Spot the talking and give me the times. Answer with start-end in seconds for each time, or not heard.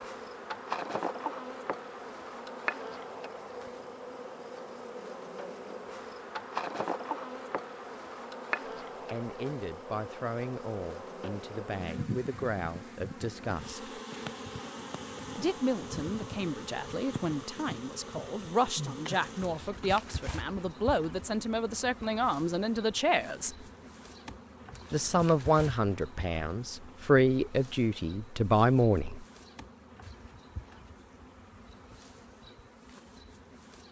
9.1-14.0, 15.3-23.6, 24.9-29.2.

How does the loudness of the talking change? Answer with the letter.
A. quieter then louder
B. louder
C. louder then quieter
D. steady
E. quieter
B.